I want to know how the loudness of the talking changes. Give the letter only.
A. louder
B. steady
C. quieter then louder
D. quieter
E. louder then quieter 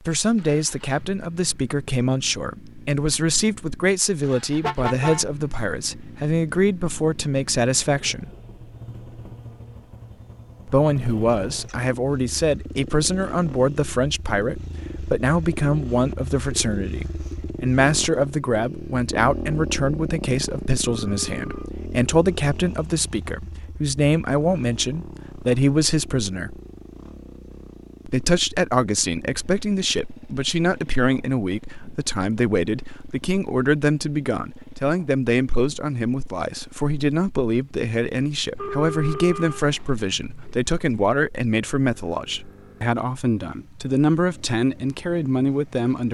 B.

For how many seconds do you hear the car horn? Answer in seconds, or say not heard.
3 s.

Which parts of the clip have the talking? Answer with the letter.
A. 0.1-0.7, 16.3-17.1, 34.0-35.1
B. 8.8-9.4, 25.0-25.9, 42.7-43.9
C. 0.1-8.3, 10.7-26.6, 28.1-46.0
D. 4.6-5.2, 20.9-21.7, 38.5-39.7
C.